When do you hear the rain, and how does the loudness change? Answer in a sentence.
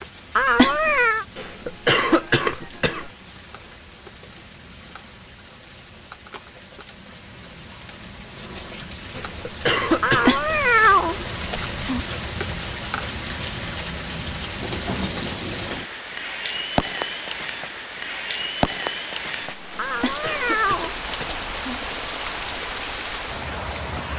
The rain can be heard from 0.0 to 24.1 s, getting louder.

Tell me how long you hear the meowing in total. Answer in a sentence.
You can hear the meowing for 5 seconds altogether.